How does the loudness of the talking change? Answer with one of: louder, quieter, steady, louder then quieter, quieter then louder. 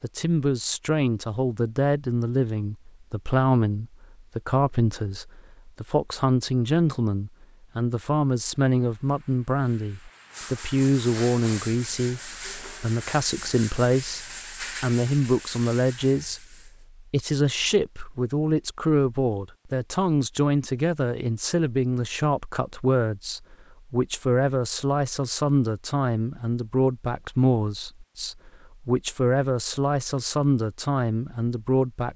steady.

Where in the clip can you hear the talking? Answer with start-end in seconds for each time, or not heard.
0.0-32.1.